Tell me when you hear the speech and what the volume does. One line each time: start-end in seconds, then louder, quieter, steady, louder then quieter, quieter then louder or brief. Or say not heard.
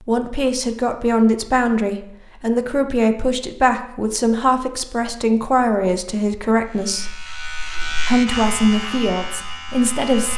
0.1-7.2 steady
8.1-10.3 brief.